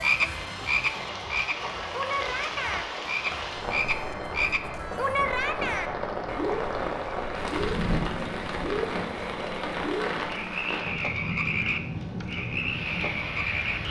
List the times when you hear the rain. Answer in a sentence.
You can hear the rain from 0.0 to 13.8 s.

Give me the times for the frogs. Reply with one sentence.
The frogs can be heard from 0.0 to 13.8 s.